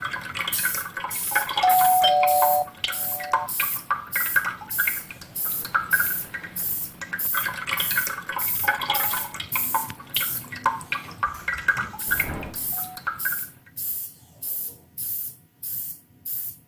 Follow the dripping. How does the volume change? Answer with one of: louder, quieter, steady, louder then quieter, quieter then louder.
steady.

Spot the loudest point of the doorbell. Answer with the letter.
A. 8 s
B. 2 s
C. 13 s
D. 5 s
B.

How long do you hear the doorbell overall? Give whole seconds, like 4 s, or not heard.
3 s.